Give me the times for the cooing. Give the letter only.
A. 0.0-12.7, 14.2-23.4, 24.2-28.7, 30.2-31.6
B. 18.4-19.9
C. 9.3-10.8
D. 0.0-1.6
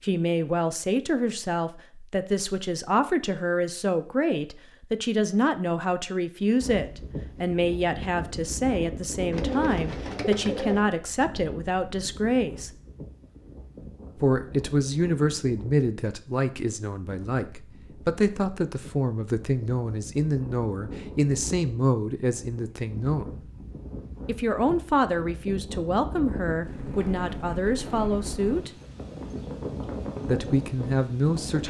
C.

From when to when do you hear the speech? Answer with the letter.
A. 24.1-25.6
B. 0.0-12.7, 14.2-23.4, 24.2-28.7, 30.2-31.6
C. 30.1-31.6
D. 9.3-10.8
B.